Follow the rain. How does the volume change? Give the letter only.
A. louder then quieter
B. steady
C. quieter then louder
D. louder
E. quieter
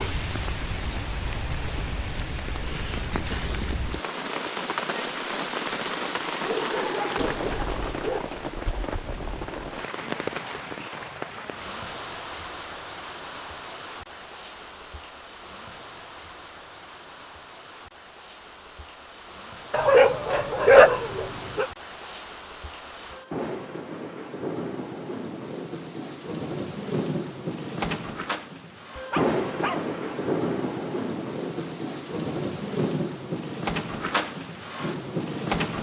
C.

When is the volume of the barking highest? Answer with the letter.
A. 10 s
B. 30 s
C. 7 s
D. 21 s
D.